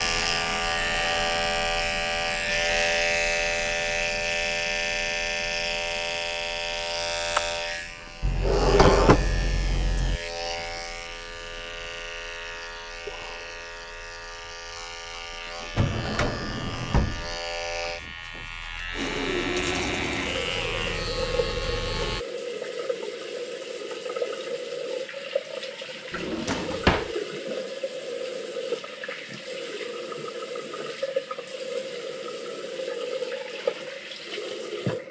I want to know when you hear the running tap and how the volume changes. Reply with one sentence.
The running tap can be heard from 18.9 to 35.0 s, at a steady volume.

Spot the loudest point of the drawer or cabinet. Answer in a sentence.
The loudest moment of the drawer or cabinet is at 9 seconds.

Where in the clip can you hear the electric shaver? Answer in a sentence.
The electric shaver can be heard from 0.0 to 22.2 s.